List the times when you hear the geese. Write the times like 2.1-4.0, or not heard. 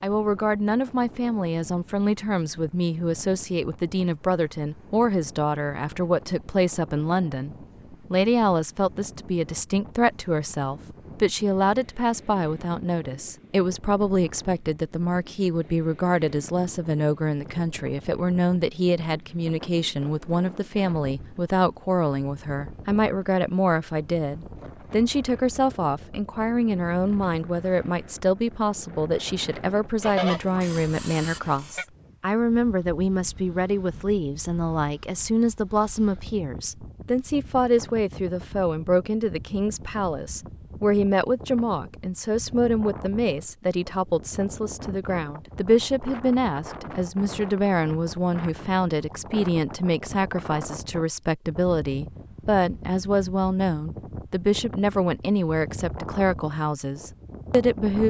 30.0-31.9.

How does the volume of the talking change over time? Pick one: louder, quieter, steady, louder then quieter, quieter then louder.
steady.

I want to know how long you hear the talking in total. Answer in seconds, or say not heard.
58 s.